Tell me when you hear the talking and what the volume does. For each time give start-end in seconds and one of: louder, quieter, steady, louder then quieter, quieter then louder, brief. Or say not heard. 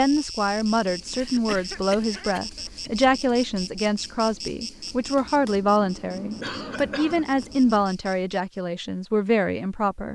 0.0-10.1 steady.